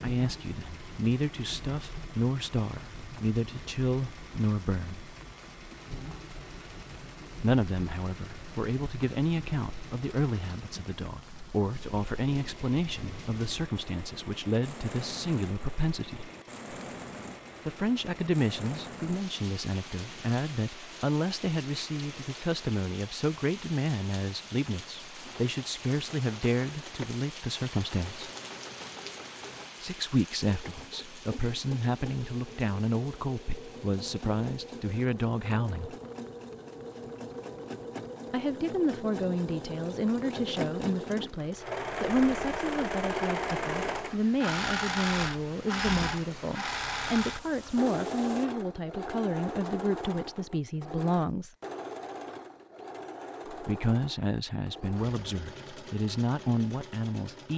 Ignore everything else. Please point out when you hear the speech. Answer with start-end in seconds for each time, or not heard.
0.0-5.1, 7.4-16.3, 17.6-28.3, 29.8-36.0, 38.3-51.5, 53.5-57.5.